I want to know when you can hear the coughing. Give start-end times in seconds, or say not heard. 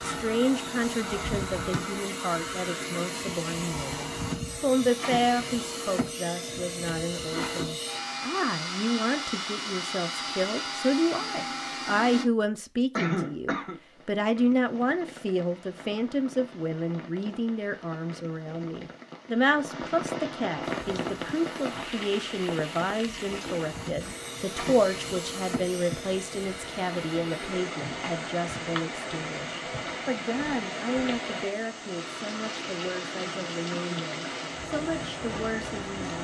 12.9-13.8, 33.1-34.5.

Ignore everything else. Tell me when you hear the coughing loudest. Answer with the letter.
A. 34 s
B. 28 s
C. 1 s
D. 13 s
D.